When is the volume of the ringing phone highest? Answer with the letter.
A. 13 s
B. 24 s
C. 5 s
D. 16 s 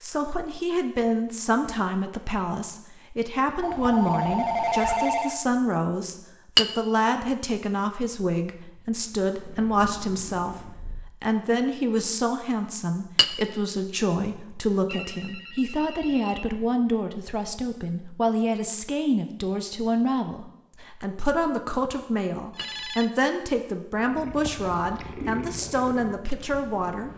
C.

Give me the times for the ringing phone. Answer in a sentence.
You can hear the ringing phone from 3.6 to 5.3 s, from 14.8 to 16.4 s and from 22.6 to 23.1 s.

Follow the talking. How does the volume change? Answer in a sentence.
The volume of the talking stays about the same.